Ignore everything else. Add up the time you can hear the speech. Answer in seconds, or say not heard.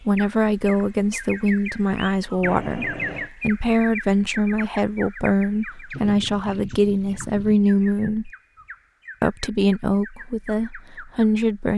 11 s.